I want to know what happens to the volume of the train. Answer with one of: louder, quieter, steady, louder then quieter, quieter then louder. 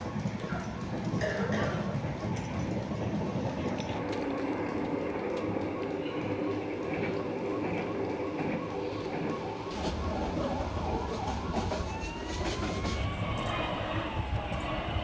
steady.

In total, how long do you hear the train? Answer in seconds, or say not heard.
15 s.